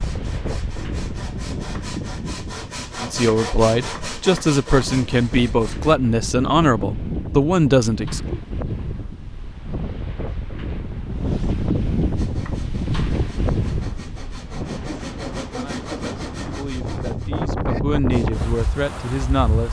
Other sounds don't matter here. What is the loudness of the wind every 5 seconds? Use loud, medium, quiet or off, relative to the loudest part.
medium, medium, loud, loud.